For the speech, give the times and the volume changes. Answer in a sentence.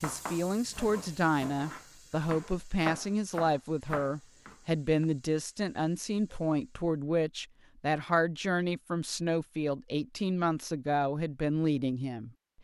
The speech can be heard from 0.0 to 12.3 s, at a steady volume.